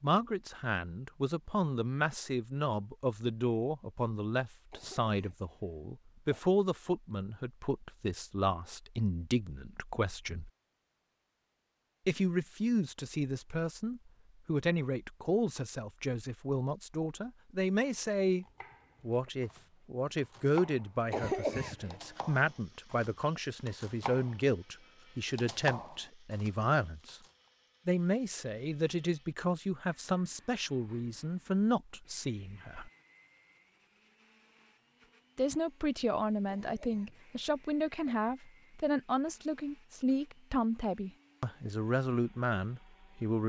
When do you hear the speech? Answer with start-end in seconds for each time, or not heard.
0.0-10.5, 12.1-27.2, 27.9-32.9, 35.4-43.4.